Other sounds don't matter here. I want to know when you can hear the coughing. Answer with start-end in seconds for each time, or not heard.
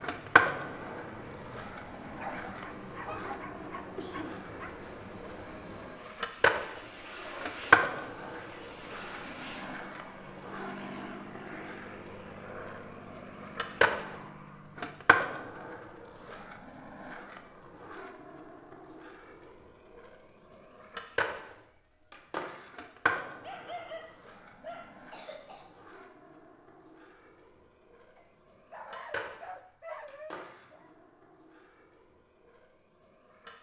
4.0-4.5, 25.1-25.8.